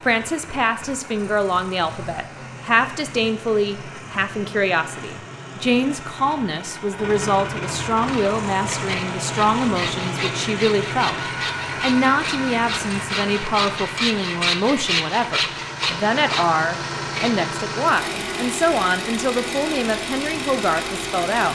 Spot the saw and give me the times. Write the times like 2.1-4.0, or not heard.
8.0-17.5.